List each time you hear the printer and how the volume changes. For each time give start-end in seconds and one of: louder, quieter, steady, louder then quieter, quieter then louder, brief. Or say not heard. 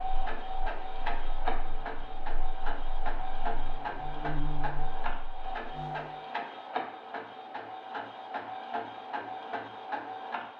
0.0-10.5 steady.